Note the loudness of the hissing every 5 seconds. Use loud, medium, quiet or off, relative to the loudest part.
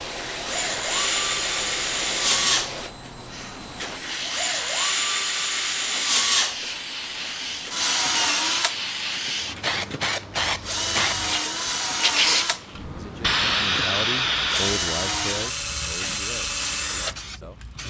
medium, medium, loud, quiet.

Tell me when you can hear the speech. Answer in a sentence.
You can hear the speech from 12.9 to 17.8 s.